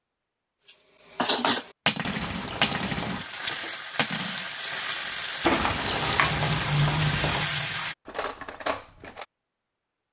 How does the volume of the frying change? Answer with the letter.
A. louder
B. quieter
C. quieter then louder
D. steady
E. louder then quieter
A.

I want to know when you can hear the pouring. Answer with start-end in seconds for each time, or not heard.
2.0-3.2, 5.4-7.5.